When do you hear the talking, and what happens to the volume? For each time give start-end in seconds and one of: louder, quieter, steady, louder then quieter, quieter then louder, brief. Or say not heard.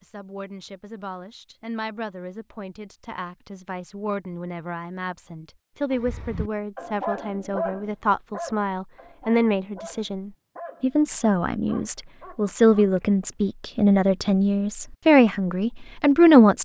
0.0-16.5 louder.